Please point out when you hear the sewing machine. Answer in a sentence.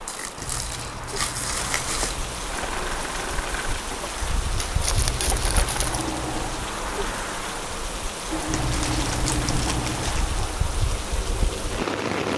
The sewing machine can be heard from 2.5 to 12.2 s.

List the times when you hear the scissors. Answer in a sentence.
You can hear the scissors from 0.3 to 2.5 s, from 5.0 to 6.7 s and from 8.5 to 10.2 s.